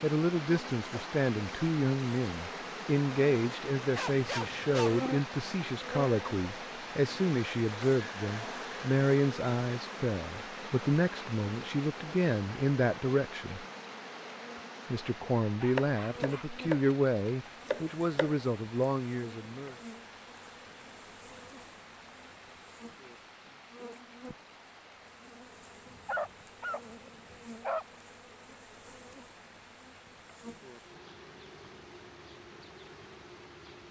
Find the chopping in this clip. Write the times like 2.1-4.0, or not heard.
15.8-18.4.